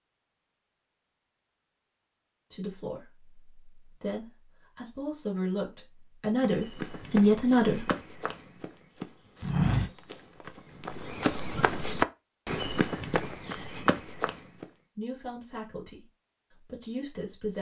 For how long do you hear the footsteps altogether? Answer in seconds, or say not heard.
8 s.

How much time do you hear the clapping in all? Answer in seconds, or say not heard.
not heard.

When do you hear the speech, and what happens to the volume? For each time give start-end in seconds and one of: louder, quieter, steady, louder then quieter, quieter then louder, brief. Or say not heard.
2.5-7.9 louder
14.9-17.5 brief.